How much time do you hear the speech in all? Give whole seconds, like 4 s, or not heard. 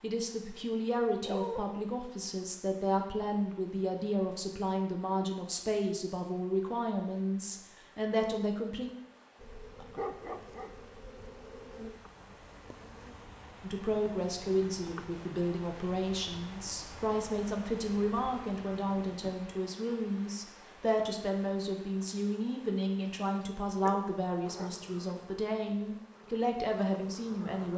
23 s.